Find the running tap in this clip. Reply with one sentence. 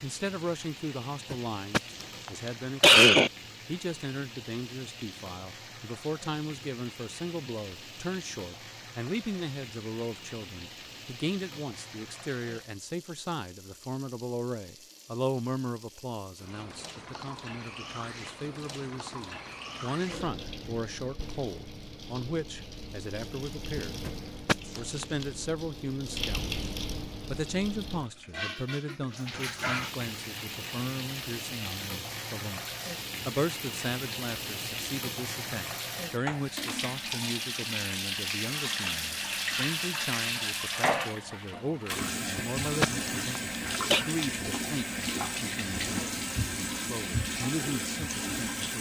The running tap can be heard from 0.0 to 48.7 s.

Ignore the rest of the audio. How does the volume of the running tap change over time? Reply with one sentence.
The loudness of the running tap goes up.